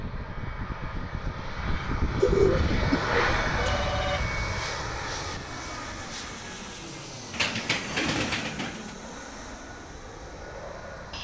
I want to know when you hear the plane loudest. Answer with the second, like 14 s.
3 s.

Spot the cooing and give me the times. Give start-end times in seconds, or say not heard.
2.2-3.5, 7.3-8.9.